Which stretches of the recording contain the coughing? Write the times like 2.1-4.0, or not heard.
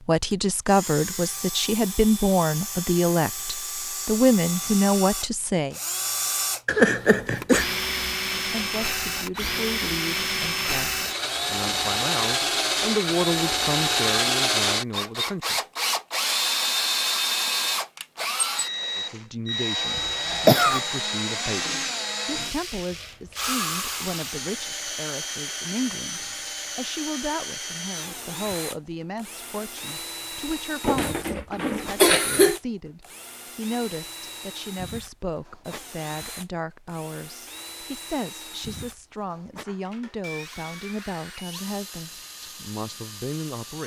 6.7-7.7, 19.9-20.8, 30.8-32.6.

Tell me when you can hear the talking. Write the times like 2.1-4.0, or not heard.
0.1-5.8, 8.5-15.6, 18.9-43.8.